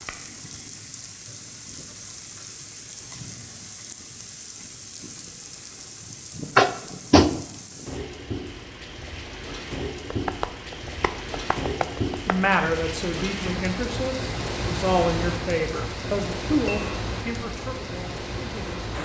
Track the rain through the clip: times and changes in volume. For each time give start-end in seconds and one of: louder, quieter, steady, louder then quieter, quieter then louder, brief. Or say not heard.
0.0-19.0 louder.